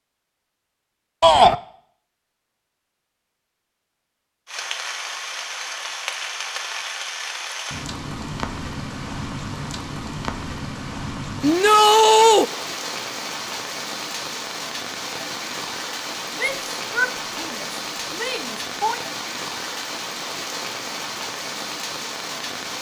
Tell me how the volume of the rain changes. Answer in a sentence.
The volume of the rain stays about the same.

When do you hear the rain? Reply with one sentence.
The rain can be heard from 4.5 to 22.7 s.